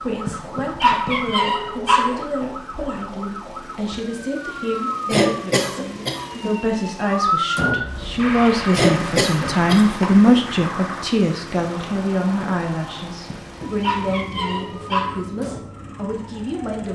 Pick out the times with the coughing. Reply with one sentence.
The coughing can be heard from 5.0 to 6.6 s and from 8.7 to 9.9 s.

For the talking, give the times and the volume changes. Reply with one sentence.
You can hear the talking from 0.0 to 16.9 s, getting louder then quieter.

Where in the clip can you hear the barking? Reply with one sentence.
The barking can be heard from 0.2 to 2.2 s and from 13.2 to 15.2 s.